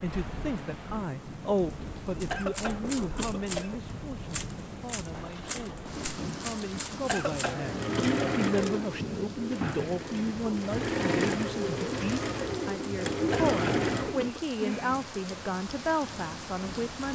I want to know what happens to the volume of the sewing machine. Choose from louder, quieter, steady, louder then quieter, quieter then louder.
quieter then louder.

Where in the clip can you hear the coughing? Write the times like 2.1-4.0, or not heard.
2.3-3.8, 7.0-8.1, 13.3-14.4.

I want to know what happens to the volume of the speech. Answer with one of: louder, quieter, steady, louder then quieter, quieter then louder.
quieter then louder.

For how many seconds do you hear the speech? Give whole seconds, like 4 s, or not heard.
17 s.